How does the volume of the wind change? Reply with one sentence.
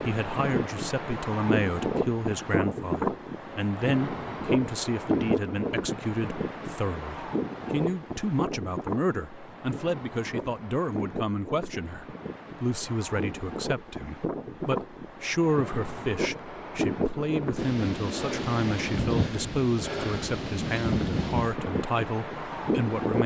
The volume of the wind goes down, then up.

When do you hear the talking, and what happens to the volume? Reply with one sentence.
You can hear the talking from 0.0 to 23.2 s, at a steady volume.